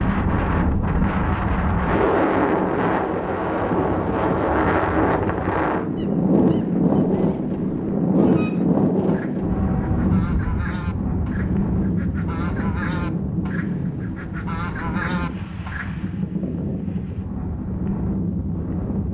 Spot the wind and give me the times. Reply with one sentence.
The wind can be heard from 0.0 to 19.0 s.